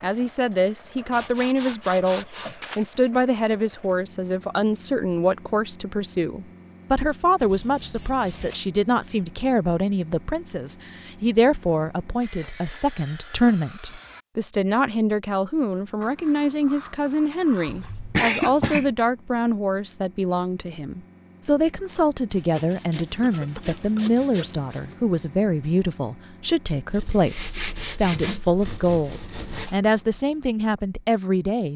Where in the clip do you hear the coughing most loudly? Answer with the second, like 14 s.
18 s.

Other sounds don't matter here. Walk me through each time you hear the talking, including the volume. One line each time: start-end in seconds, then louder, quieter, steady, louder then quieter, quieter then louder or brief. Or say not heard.
0.0-31.7 steady.